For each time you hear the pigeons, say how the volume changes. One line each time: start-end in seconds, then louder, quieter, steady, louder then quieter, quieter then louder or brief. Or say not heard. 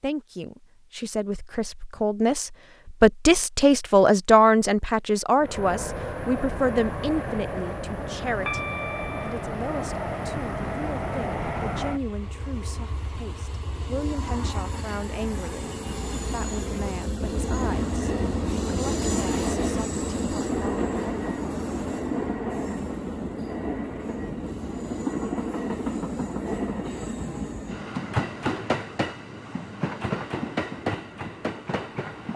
not heard.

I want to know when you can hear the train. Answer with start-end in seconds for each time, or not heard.
5.3-32.3.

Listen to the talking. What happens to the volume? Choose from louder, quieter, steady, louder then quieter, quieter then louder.
quieter.